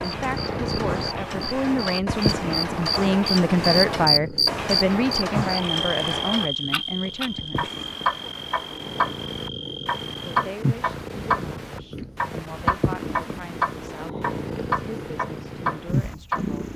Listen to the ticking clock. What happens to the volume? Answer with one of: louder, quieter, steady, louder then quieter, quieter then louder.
steady.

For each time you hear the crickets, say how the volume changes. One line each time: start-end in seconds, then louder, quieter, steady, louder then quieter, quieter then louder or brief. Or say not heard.
0.0-10.4 louder then quieter.